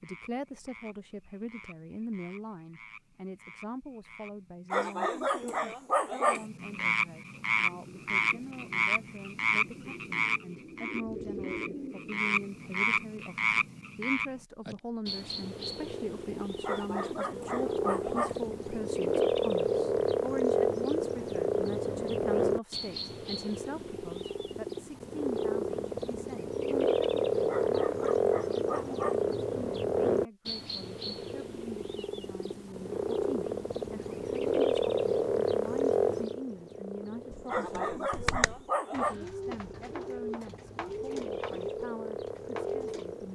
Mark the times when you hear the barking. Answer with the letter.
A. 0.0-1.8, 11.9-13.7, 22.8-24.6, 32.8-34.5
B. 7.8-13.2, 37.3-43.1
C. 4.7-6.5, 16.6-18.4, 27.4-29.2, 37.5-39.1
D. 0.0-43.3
C.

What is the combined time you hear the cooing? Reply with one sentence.
The cooing can be heard for 11 seconds in total.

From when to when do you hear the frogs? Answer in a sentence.
You can hear the frogs from 0.0 to 43.3 s.